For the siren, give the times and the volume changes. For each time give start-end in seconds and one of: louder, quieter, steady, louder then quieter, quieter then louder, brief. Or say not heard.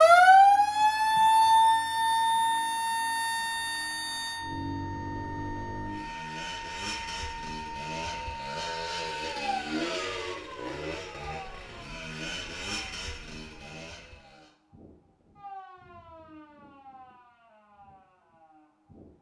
0.0-19.1 quieter.